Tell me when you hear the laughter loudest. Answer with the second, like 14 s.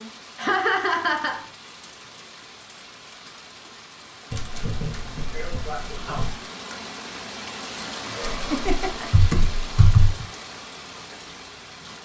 1 s.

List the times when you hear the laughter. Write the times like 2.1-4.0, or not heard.
0.3-1.4, 5.3-6.2, 8.1-9.1.